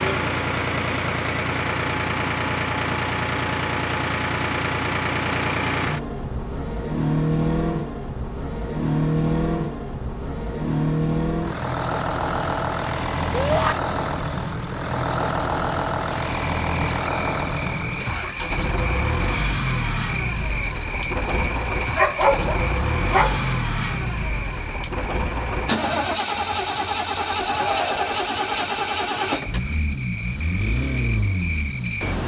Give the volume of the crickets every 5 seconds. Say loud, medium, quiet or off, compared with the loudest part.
off, off, off, loud, loud, medium, loud.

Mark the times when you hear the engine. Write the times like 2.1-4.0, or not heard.
0.0-32.2.